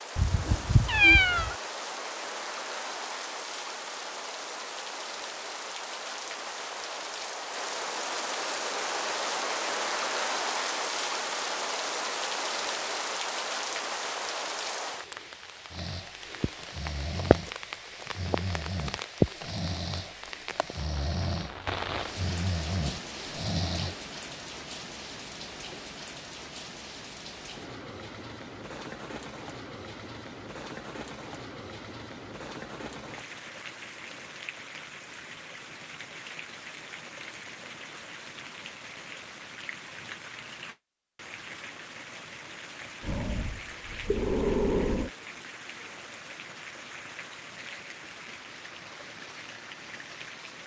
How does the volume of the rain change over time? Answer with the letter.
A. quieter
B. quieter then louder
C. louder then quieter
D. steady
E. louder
A.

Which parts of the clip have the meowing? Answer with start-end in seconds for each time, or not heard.
0.1-1.6.